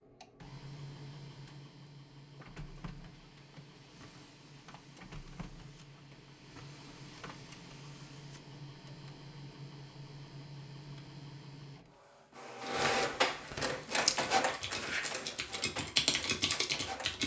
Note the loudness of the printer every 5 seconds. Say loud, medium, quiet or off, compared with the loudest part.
quiet, quiet, loud, medium.